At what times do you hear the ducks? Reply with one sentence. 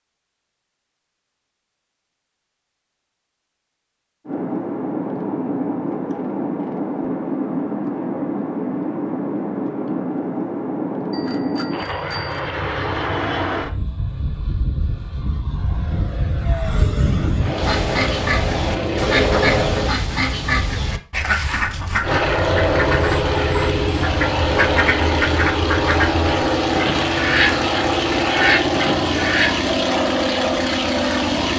You can hear the ducks from 17.6 to 29.6 s.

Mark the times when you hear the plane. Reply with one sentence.
The plane can be heard from 4.2 to 19.9 s and from 22.0 to 31.5 s.